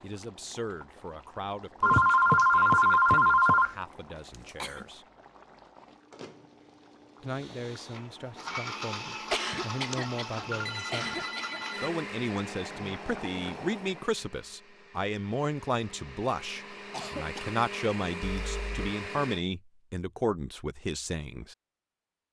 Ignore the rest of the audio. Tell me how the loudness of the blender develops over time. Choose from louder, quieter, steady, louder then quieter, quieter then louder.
quieter then louder.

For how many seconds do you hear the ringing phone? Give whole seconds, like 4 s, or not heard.
5 s.